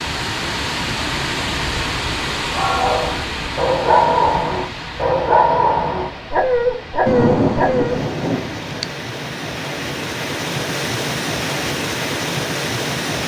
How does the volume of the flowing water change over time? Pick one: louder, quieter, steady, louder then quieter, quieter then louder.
quieter then louder.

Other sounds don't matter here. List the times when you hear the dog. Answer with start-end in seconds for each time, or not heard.
2.5-8.0.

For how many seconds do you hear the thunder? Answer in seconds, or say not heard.
2 s.